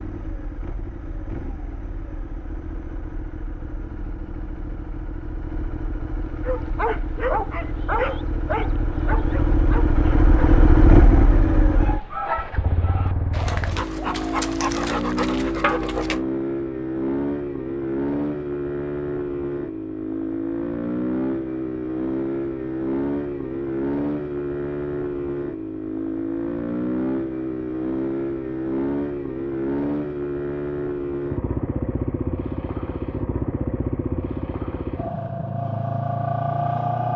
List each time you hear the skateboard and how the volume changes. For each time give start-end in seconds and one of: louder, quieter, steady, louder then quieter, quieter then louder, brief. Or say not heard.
not heard.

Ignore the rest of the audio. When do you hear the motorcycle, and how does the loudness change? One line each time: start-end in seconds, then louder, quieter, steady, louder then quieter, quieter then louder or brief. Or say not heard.
0.0-37.1 louder.